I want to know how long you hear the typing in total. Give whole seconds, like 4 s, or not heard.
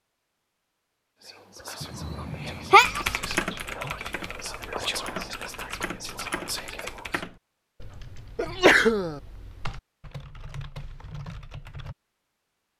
9 s.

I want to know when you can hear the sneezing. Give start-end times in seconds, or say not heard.
1.8-3.0, 8.3-9.2.